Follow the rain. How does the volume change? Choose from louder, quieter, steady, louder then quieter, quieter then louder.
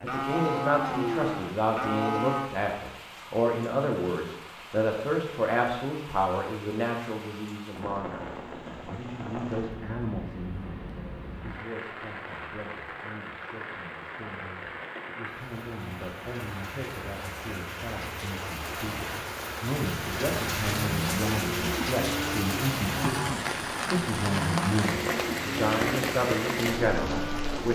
louder.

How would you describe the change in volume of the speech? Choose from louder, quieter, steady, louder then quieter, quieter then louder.
quieter then louder.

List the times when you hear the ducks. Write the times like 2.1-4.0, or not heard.
not heard.